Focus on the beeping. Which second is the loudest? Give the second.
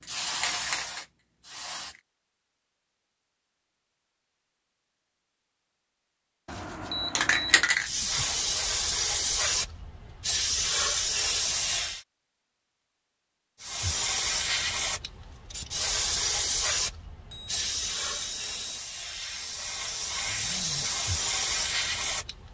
7 s.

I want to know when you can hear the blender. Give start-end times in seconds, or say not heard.
not heard.